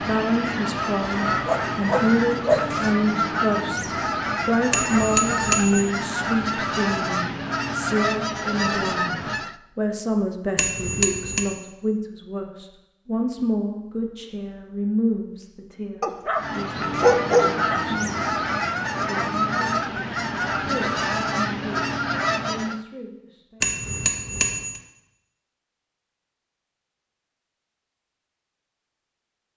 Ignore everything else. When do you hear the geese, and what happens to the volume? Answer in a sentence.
You can hear the geese from 0.0 to 9.6 s, at a steady volume; and from 16.4 to 22.8 s, at a steady volume.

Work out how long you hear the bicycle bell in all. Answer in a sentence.
The bicycle bell can be heard for 3 seconds in total.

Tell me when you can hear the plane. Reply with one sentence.
The plane can't be heard in this clip.